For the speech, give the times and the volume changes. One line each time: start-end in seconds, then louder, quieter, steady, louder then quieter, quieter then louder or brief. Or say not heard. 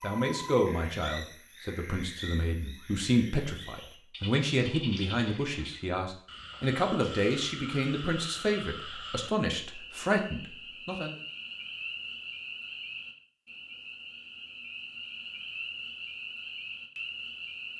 0.0-11.2 steady.